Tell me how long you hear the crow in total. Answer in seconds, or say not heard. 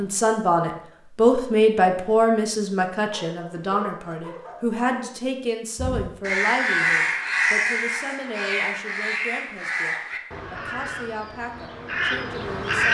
7 s.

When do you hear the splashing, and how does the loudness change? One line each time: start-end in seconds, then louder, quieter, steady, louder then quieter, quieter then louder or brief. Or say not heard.
not heard.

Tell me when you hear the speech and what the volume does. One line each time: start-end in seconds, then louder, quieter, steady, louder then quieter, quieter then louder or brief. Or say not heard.
0.0-12.9 quieter.